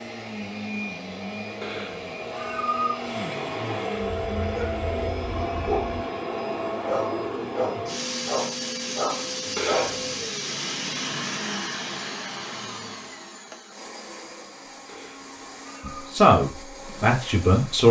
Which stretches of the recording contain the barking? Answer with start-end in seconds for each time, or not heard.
4.2-6.0, 6.8-10.1.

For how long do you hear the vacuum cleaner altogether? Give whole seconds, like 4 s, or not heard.
18 s.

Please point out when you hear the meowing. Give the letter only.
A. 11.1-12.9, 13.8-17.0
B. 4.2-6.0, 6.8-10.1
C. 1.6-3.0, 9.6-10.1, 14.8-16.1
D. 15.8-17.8
C.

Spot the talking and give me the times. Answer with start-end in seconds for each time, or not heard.
15.8-17.8.